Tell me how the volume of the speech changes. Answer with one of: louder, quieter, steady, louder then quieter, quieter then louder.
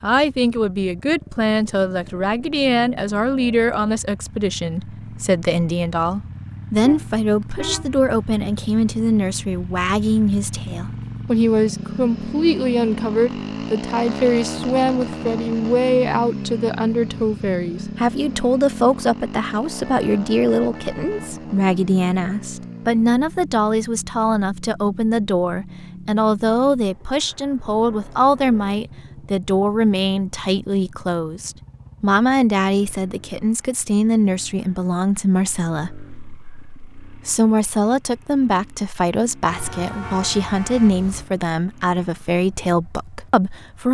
steady.